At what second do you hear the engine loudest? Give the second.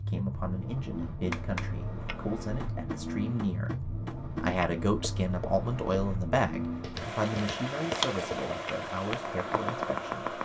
8 s.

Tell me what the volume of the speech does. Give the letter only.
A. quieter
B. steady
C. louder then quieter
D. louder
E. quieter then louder
C.